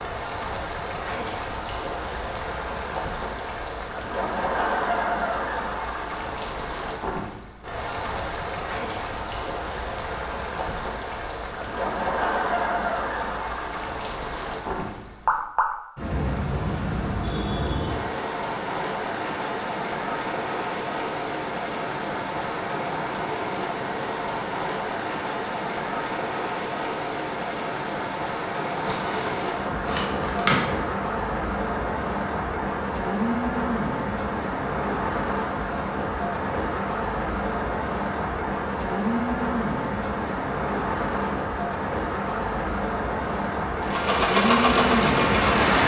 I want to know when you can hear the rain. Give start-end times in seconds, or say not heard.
0.0-45.8.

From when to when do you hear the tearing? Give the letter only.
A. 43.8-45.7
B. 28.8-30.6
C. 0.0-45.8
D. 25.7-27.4
B.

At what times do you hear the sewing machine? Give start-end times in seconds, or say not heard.
43.8-45.7.